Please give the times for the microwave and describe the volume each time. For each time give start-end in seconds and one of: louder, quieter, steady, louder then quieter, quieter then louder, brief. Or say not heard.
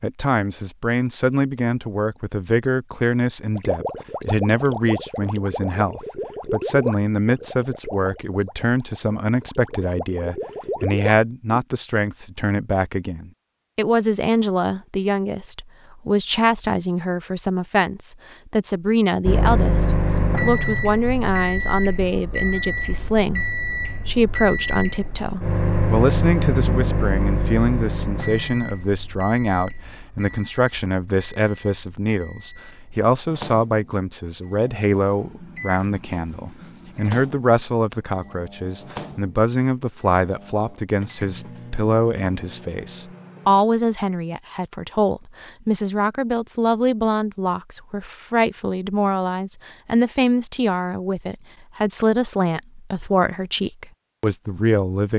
19.2-43.6 quieter.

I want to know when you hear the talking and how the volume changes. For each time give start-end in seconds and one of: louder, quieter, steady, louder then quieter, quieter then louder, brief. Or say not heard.
0.0-55.1 steady.